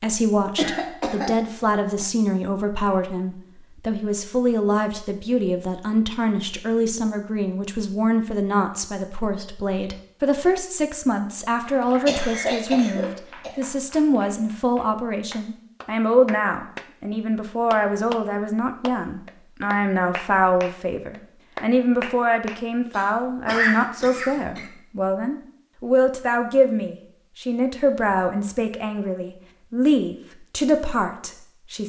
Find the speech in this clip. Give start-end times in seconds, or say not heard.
0.0-31.8.